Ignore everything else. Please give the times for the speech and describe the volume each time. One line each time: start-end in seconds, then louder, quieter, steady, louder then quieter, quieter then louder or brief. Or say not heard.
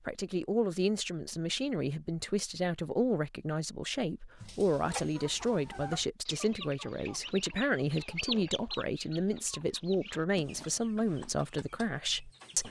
0.1-12.6 steady.